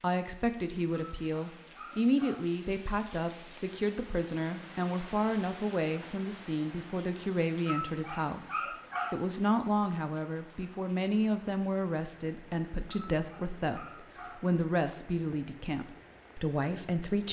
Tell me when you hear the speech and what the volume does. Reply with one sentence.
You can hear the speech from 0.0 to 17.2 s, at a steady volume.